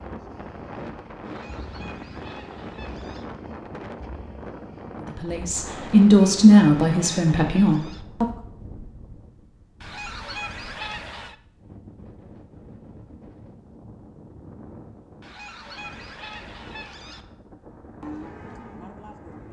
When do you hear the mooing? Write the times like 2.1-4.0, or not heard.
18.0-19.4.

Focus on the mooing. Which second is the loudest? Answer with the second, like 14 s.
18 s.